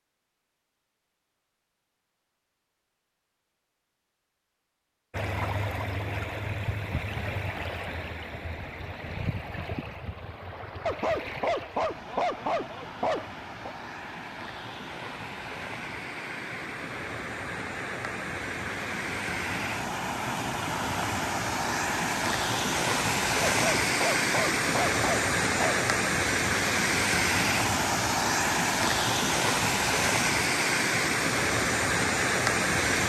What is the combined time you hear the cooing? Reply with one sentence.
You can't hear the cooing here.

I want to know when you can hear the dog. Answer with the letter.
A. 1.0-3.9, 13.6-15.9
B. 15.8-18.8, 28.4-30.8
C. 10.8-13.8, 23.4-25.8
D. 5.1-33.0
C.